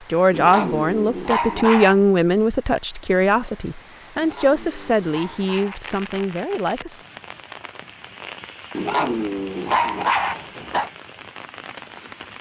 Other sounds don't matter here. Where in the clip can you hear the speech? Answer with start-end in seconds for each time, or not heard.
0.1-7.0.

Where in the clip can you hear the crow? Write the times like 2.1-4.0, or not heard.
not heard.